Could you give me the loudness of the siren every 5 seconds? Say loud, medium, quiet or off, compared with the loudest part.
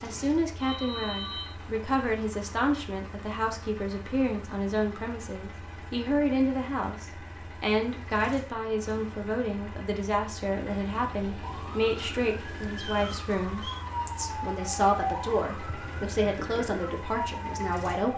off, off, loud, loud.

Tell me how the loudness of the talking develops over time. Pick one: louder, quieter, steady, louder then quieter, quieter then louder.
steady.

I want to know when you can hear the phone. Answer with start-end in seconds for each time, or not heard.
0.6-1.6.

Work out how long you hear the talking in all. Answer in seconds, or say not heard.
18 s.